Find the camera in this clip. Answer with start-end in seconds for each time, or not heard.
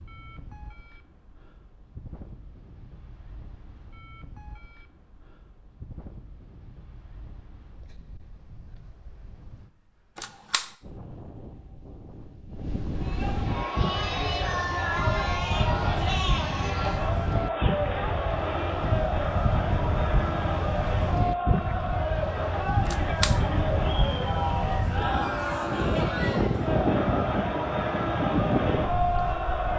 10.2-10.7, 22.9-23.4.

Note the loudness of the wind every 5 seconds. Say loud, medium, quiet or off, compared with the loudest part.
quiet, quiet, medium, loud, loud, loud.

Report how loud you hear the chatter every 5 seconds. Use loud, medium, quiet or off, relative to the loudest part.
off, off, loud, loud, loud, loud.